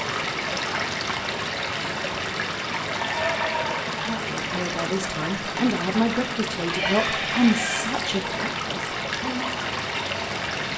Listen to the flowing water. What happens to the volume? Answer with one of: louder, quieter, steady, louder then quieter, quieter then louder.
steady.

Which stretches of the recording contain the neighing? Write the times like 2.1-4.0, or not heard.
3.0-3.9, 6.7-7.8.